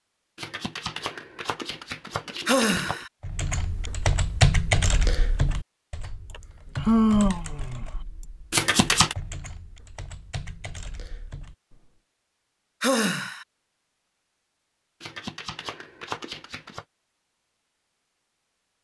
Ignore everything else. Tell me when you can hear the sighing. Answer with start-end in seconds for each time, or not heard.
2.5-3.0, 6.3-7.8, 12.8-13.4.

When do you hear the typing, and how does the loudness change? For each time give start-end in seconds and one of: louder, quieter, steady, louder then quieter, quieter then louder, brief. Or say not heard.
3.2-11.9 quieter.